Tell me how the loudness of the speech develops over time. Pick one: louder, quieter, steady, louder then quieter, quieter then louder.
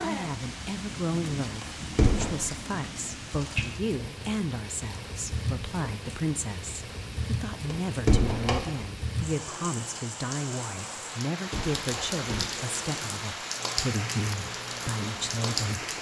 steady.